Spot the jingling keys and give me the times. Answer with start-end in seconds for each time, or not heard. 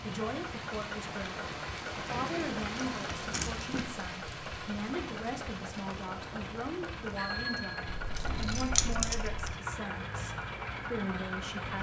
2.0-3.9, 7.8-9.6.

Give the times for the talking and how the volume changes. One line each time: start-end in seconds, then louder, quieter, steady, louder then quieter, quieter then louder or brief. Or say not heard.
0.0-11.7 steady.